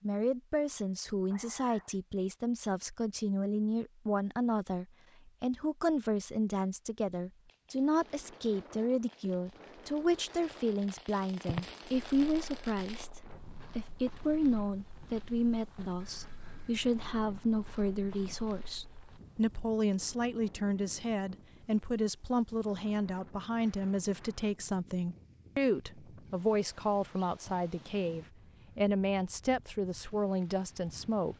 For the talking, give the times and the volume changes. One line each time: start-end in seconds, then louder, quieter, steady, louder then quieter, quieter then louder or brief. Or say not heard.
0.0-31.3 steady.